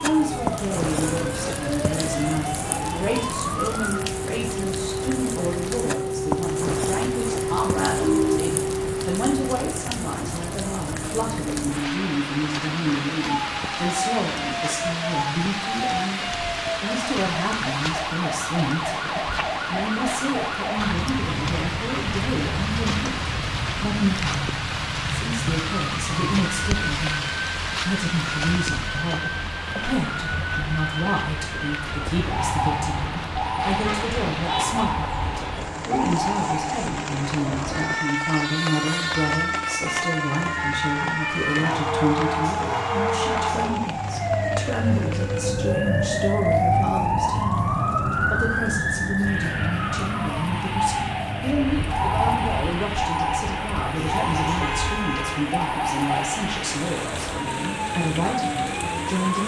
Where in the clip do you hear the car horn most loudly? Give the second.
8 s.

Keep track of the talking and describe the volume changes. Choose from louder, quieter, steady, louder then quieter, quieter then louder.
steady.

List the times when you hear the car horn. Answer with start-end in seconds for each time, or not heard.
7.9-8.6, 33.9-34.8, 53.9-55.4.